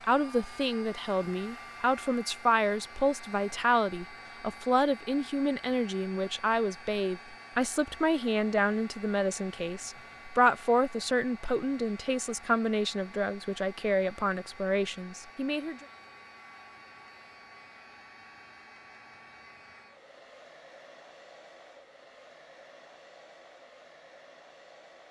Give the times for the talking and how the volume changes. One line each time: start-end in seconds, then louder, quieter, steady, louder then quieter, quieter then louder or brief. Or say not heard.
0.1-15.8 steady.